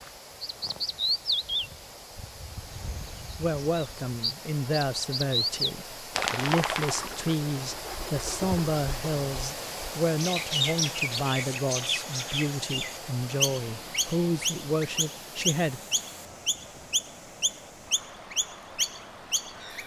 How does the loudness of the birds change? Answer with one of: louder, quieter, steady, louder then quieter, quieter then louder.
steady.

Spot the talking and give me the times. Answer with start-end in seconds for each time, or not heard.
3.4-15.8.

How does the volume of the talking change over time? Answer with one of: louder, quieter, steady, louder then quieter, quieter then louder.
steady.